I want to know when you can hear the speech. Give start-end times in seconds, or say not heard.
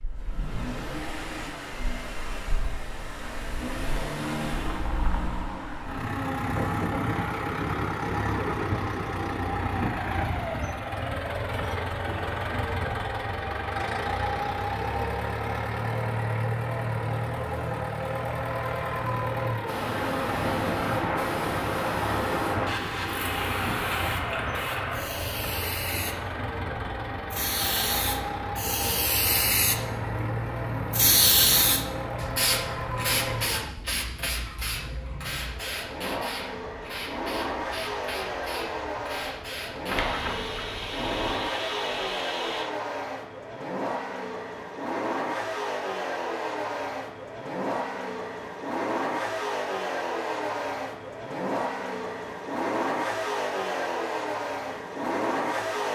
not heard.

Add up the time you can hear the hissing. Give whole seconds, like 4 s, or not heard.
23 s.